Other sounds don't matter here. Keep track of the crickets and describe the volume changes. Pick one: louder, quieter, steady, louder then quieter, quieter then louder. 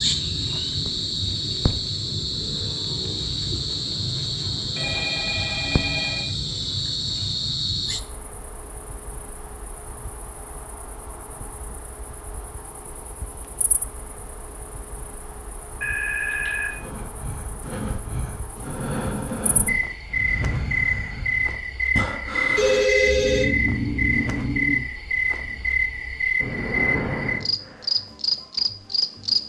quieter then louder.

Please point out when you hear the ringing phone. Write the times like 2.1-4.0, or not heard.
4.8-6.2, 15.8-16.8, 22.6-23.4.